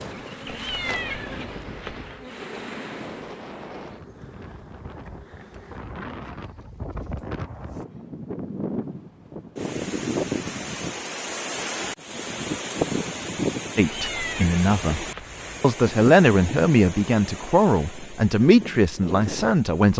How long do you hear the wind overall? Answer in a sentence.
The wind can be heard for 20 seconds in total.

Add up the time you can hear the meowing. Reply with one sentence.
The meowing can be heard for 4 seconds in total.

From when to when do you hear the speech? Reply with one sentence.
The speech can be heard from 13.8 to 19.9 s.